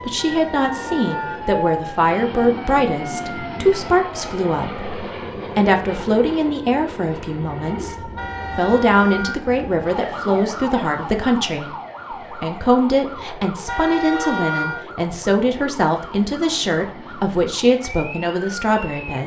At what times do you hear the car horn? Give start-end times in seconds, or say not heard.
0.1-1.4, 8.2-9.5, 13.7-14.8.